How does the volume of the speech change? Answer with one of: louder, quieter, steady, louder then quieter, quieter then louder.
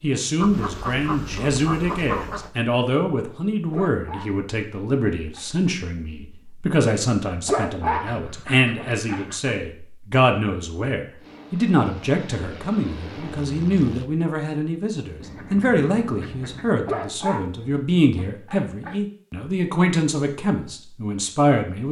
steady.